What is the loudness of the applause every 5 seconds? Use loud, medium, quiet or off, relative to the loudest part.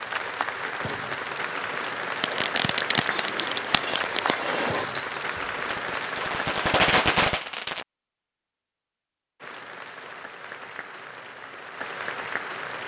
loud, loud, medium.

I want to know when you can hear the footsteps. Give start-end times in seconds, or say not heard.
not heard.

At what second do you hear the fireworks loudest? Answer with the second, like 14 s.
7 s.